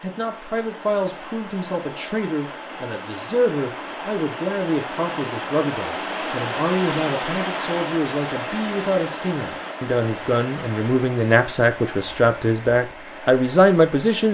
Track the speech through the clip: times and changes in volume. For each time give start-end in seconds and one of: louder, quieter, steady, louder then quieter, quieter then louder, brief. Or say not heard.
0.0-14.3 louder.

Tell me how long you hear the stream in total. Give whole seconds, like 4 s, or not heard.
14 s.